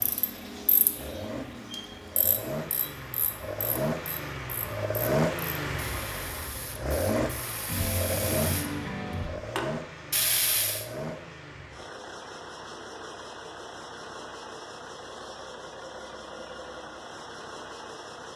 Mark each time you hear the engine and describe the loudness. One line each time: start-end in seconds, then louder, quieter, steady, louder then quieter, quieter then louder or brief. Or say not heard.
0.0-18.3 louder then quieter.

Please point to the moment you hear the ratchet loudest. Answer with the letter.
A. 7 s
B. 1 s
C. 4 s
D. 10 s
D.